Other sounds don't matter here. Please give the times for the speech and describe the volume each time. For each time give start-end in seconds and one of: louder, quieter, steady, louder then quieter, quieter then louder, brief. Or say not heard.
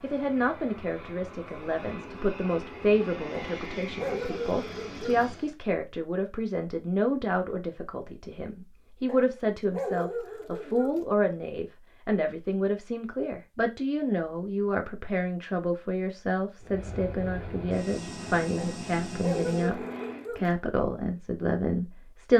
0.0-22.3 steady.